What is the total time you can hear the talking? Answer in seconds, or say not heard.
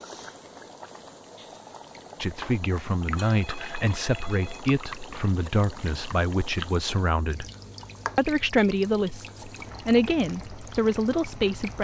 9 s.